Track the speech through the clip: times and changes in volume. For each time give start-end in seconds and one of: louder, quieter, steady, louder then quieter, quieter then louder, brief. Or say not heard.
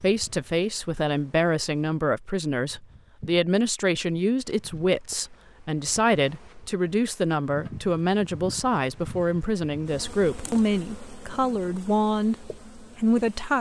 0.0-13.5 steady.